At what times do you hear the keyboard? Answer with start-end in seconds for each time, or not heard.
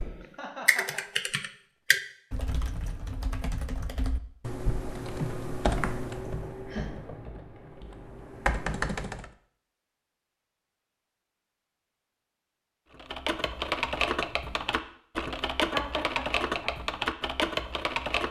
0.0-9.3, 12.9-18.2.